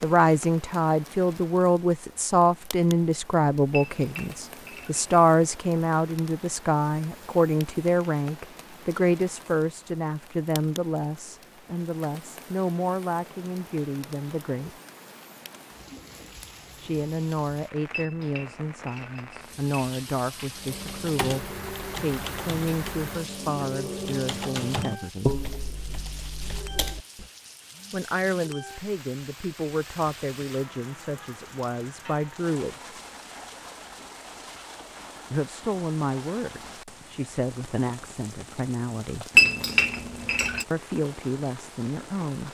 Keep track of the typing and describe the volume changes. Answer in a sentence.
The volume of the typing goes up, then down.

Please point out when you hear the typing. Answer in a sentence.
The typing can be heard from 20.6 to 27.3 s.